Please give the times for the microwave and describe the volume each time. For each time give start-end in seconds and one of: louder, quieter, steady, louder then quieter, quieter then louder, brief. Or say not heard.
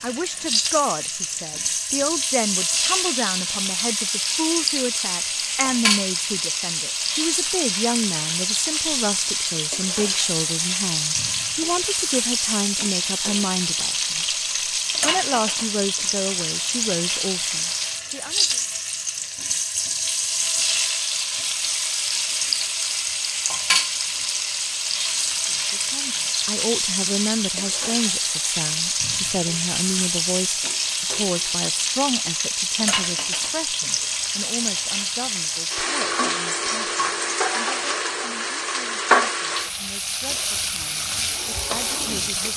not heard.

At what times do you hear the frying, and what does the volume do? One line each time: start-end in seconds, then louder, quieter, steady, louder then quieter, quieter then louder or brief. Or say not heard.
0.0-42.5 steady.